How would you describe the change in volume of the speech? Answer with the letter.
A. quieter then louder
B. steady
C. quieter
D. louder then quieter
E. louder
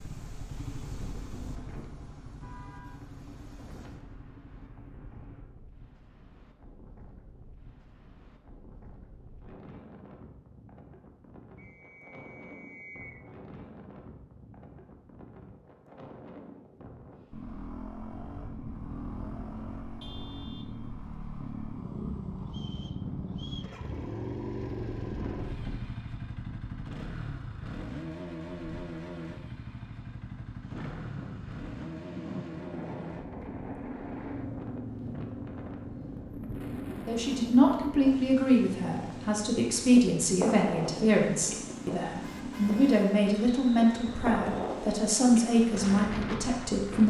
B.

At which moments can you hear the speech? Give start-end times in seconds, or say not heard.
37.0-47.0.